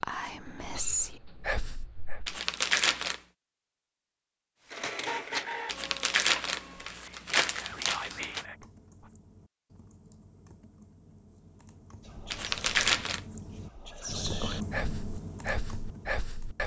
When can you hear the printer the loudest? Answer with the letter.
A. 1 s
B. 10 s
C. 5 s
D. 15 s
C.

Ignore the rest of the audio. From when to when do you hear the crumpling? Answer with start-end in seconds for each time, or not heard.
2.2-3.2, 5.7-8.4, 12.3-13.2.